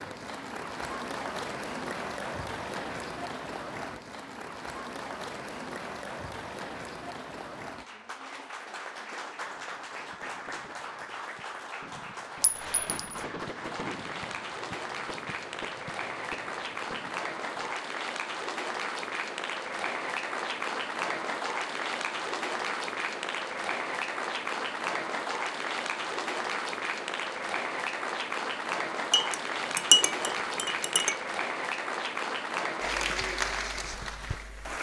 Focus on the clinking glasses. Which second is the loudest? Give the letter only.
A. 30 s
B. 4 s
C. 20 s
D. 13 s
A.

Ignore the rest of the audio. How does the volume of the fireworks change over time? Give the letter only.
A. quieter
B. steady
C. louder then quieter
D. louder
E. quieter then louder
C.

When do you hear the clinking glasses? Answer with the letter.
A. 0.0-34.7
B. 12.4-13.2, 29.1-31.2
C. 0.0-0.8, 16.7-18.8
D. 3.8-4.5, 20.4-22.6
B.